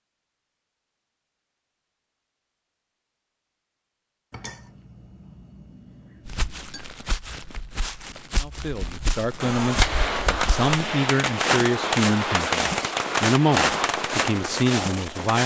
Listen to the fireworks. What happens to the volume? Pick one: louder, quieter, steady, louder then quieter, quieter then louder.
steady.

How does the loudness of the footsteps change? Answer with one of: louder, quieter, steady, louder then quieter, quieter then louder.
louder.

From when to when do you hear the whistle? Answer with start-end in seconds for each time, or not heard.
not heard.